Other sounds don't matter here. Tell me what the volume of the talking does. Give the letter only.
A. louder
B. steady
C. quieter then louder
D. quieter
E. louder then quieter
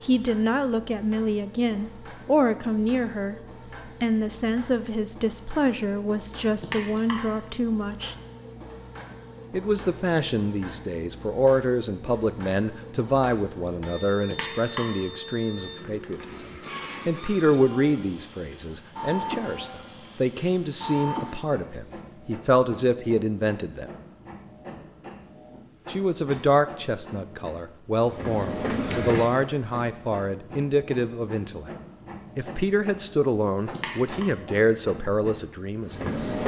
B.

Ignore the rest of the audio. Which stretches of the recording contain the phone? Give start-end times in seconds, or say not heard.
not heard.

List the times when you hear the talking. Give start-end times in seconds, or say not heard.
0.0-3.4, 4.0-8.2, 9.5-23.9, 25.9-31.7, 32.4-36.4.